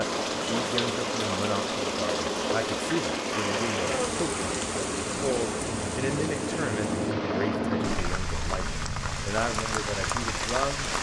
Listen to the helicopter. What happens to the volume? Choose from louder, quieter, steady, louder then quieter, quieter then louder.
louder then quieter.